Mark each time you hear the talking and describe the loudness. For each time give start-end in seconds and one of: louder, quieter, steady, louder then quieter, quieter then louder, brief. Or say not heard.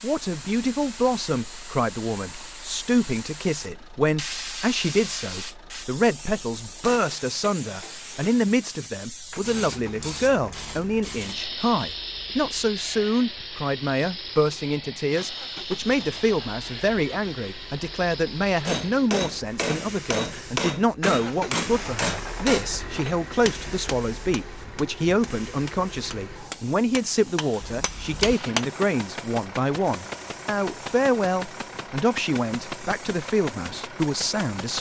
0.0-34.7 steady.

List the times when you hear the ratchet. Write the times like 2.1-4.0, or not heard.
not heard.